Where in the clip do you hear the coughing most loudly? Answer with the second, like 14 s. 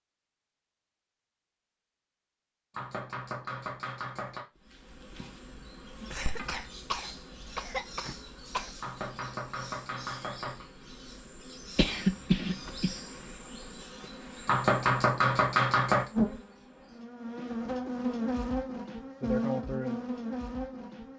12 s.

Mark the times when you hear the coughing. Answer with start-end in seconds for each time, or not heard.
6.1-8.7, 11.8-12.9.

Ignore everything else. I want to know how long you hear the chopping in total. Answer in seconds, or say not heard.
5 s.